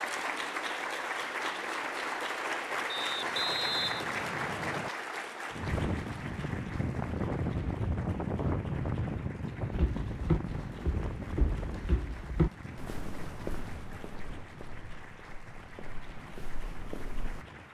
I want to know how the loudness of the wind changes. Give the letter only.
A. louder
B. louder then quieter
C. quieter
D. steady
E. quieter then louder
C.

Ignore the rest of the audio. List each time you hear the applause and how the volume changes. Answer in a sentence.
You can hear the applause from 0.0 to 17.6 s, getting quieter.